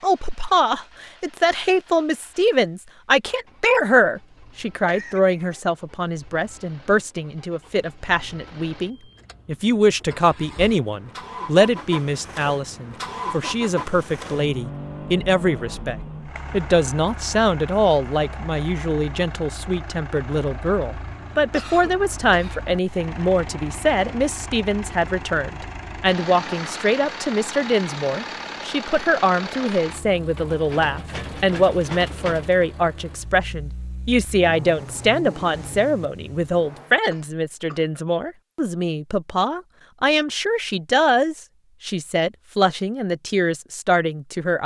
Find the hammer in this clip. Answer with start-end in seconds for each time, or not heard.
not heard.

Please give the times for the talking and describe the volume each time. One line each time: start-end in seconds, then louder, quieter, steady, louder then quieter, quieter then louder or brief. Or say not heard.
0.0-44.6 steady.